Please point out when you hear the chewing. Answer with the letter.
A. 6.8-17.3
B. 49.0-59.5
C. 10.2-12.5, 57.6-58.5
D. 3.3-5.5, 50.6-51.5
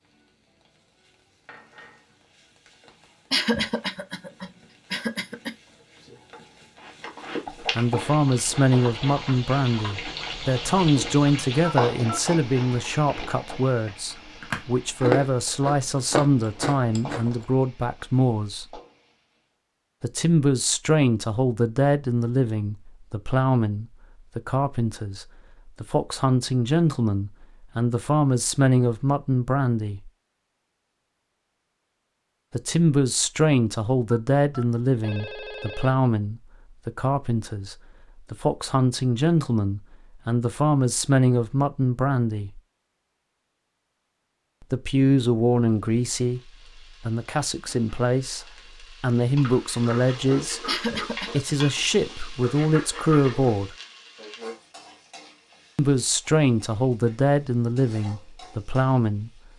A.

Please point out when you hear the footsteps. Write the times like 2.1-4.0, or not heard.
not heard.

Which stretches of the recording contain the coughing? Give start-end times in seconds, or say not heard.
3.3-5.5, 50.6-51.5.